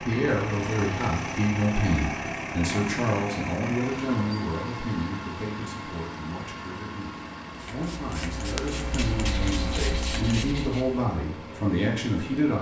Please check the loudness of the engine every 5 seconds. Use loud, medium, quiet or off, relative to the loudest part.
loud, medium, medium.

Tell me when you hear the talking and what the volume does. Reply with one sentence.
The talking can be heard from 0.0 to 12.5 s, getting quieter then louder.